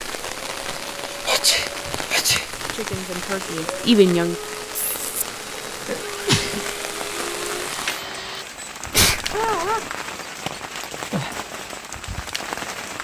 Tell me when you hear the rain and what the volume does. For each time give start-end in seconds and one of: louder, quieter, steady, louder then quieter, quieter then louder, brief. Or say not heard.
0.0-12.9 steady.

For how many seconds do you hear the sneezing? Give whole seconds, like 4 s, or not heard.
3 s.